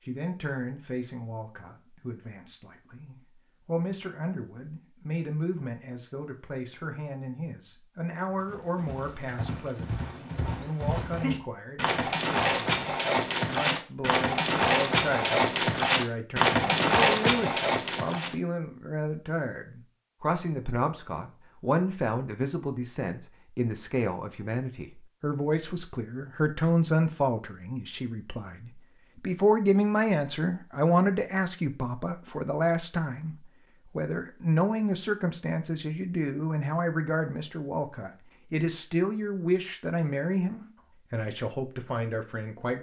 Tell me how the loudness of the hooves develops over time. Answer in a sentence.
The loudness of the hooves goes up.